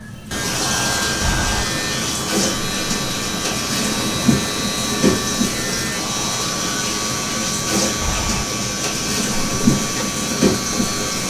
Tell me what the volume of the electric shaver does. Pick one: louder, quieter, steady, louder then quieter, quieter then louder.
steady.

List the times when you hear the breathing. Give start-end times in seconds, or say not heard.
1.2-1.6, 8.0-8.4.